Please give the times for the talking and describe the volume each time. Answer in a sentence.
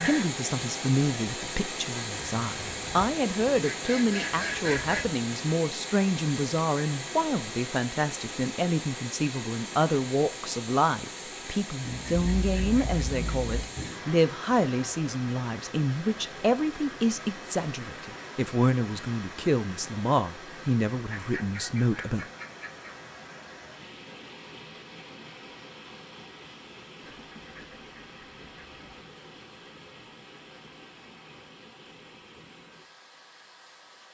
You can hear the talking from 0.0 to 22.2 s, at a steady volume.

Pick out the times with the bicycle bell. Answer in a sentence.
You can't hear the bicycle bell here.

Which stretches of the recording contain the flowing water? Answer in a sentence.
The flowing water can be heard from 0.0 to 34.1 s.